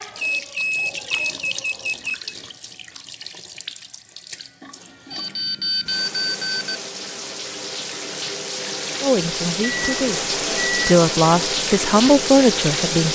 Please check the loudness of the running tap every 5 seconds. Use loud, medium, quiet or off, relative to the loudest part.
quiet, medium, loud.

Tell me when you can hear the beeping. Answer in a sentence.
The beeping can be heard from 0.1 to 2.4 s, from 5.1 to 6.8 s and from 9.6 to 10.9 s.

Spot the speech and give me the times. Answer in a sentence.
You can hear the speech from 9.0 to 13.1 s.